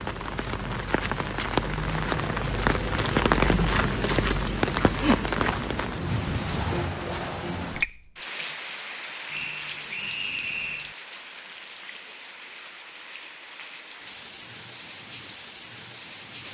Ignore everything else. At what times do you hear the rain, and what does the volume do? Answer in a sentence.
You can hear the rain from 0.0 to 16.4 s, getting quieter.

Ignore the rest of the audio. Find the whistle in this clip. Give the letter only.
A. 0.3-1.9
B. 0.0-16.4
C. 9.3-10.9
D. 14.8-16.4
C.